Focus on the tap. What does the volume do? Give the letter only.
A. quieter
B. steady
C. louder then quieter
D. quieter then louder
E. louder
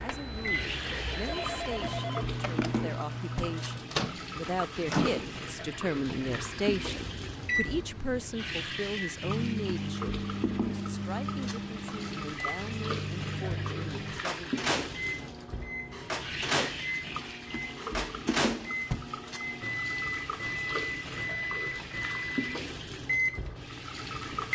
B.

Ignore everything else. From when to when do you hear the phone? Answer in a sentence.
You can hear the phone from 0.8 to 2.8 s.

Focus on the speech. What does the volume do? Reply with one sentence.
The volume of the speech goes up, then down.